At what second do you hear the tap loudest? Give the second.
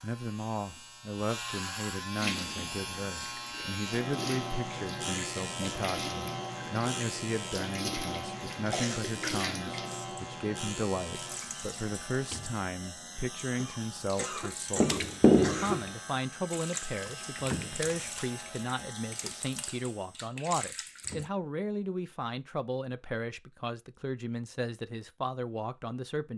15 s.